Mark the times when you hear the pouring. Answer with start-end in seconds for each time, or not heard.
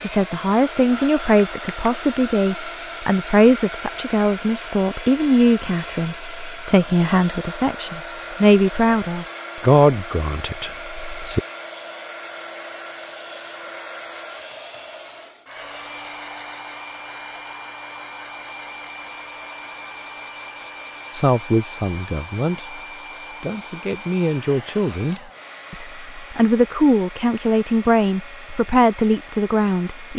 not heard.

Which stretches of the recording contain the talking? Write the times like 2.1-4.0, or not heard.
0.0-11.4, 21.1-30.1.